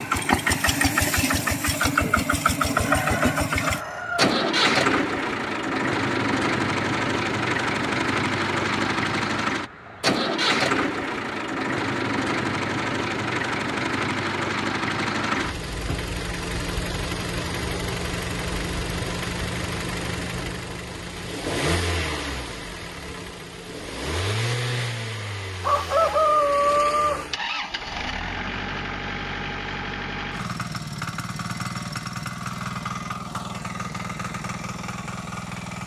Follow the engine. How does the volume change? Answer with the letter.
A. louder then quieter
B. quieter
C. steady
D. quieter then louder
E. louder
B.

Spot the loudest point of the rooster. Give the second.
26 s.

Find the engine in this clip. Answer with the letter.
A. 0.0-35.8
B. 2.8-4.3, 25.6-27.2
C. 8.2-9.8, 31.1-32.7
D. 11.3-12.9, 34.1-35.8
A.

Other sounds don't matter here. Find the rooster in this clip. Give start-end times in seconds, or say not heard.
2.8-4.3, 25.6-27.2.